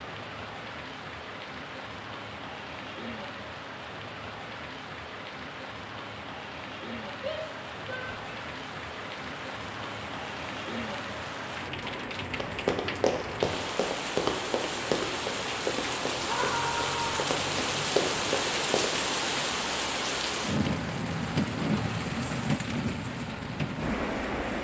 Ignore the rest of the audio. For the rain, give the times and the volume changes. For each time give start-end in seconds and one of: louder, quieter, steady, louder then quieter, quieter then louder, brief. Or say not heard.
0.0-24.5 louder.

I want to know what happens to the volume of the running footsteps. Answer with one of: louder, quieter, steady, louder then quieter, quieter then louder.
quieter then louder.